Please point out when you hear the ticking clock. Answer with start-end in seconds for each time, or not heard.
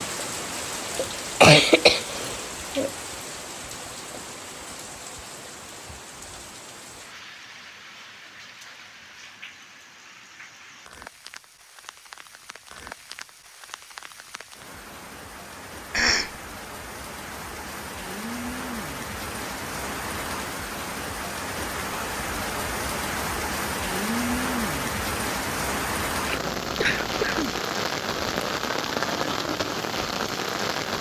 not heard.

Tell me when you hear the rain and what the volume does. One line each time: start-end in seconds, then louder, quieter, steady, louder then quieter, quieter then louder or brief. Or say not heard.
0.0-30.9 quieter then louder.